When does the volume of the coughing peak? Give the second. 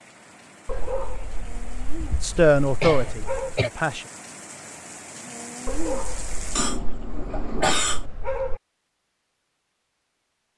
8 s.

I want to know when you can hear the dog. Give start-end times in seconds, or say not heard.
0.7-3.6, 5.7-8.6.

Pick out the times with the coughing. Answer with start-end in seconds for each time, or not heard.
1.9-3.7, 6.5-8.1.